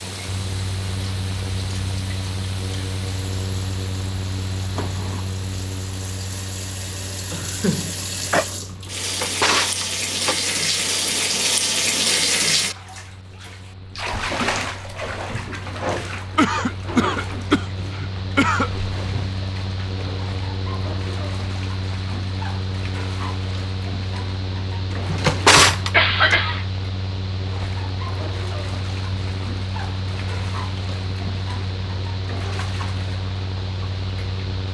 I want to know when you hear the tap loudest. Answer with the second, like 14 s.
12 s.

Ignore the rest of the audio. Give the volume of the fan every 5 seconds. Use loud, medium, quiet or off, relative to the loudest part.
loud, medium, quiet, loud, loud, loud, loud.